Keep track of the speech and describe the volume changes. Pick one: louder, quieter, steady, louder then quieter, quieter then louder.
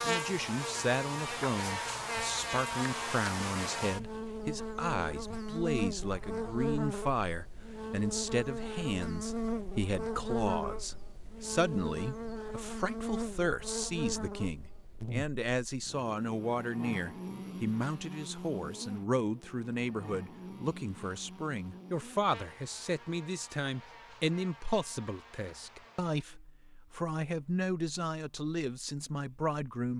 steady.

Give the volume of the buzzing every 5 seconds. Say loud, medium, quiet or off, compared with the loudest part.
loud, loud, loud, medium, quiet, quiet.